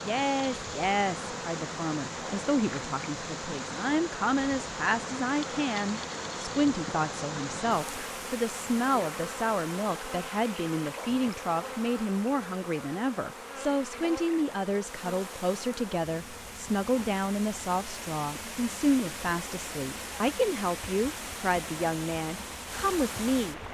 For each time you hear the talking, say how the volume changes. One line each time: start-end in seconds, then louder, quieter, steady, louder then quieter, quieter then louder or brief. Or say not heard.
0.0-23.6 steady.